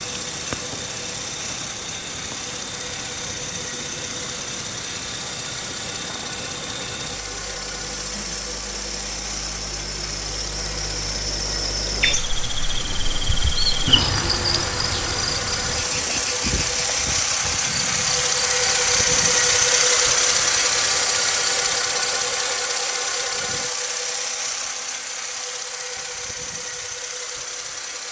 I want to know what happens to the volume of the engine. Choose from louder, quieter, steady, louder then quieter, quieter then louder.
louder then quieter.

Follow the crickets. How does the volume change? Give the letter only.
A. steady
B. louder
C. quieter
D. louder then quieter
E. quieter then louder
D.